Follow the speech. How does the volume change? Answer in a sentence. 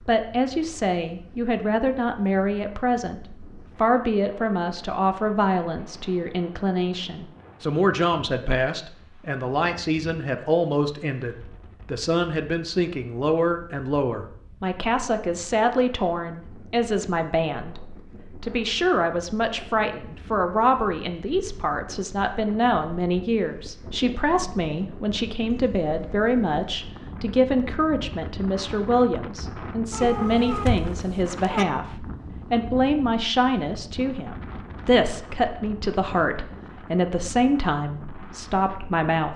The loudness of the speech stays about the same.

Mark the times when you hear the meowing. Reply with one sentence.
The meowing can be heard from 29.9 to 31.6 s.